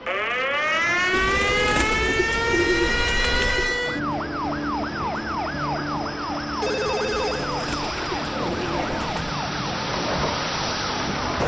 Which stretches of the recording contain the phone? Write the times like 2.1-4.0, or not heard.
2.8-3.8, 6.6-7.5.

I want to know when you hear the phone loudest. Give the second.
7 s.